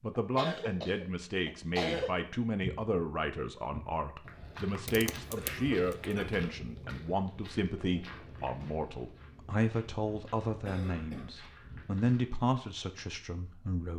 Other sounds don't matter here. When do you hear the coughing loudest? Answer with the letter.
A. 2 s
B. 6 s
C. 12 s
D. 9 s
A.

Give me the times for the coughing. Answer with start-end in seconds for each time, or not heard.
0.1-2.1, 5.2-6.4, 10.7-11.3.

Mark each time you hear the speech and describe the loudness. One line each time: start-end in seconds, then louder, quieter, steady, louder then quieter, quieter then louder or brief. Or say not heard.
0.0-13.9 steady.